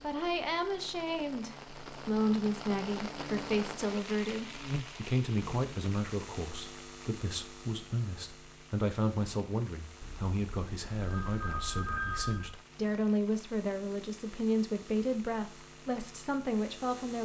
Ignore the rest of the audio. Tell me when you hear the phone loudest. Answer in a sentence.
The loudest moment of the phone is at 12 seconds.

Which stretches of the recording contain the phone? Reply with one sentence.
The phone can be heard from 10.0 to 12.6 s.